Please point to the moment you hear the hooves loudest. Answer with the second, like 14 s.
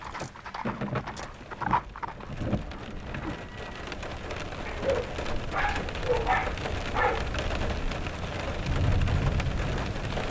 2 s.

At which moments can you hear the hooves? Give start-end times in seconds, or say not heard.
0.0-4.3.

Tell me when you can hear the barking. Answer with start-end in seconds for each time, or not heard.
4.7-7.3.